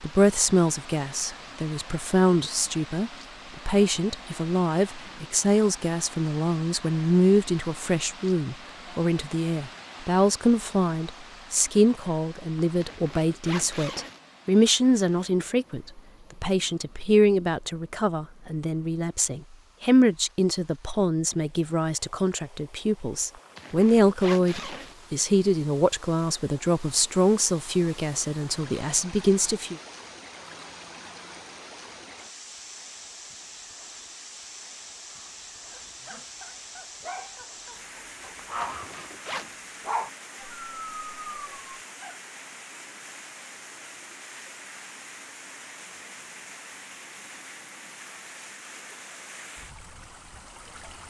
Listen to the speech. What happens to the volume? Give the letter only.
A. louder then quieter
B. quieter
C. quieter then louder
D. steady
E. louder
D.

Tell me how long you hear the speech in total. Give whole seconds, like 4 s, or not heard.
30 s.